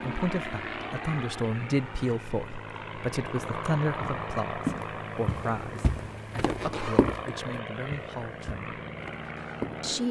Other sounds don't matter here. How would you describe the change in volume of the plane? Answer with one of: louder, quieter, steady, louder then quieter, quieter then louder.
steady.